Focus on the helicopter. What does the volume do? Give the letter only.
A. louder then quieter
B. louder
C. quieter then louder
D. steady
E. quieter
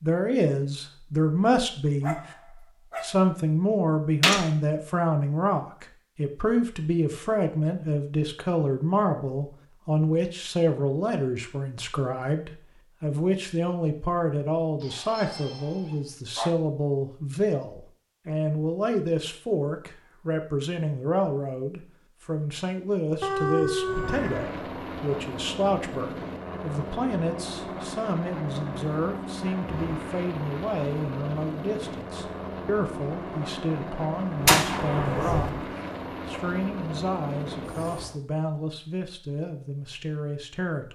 D.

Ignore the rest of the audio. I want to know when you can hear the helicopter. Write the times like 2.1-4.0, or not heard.
23.8-38.2.